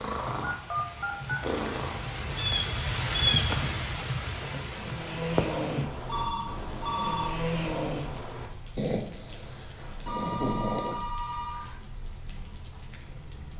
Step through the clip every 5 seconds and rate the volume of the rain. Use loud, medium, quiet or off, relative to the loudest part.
loud, medium, quiet.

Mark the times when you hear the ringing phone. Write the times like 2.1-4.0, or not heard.
0.4-1.4, 6.0-7.3, 9.2-11.8.